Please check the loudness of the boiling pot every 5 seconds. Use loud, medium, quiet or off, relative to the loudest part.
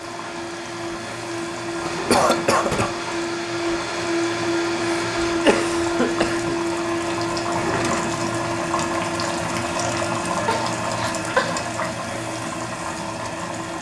medium, loud, loud.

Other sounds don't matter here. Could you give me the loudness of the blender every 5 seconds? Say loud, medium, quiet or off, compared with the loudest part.
loud, loud, medium.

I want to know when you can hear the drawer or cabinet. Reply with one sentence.
You can hear the drawer or cabinet from 1.7 to 2.9 s and from 7.4 to 8.2 s.